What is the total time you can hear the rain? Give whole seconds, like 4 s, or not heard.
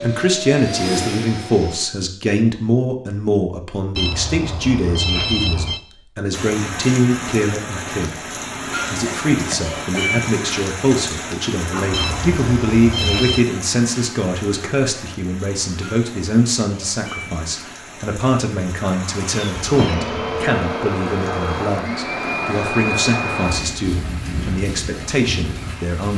20 s.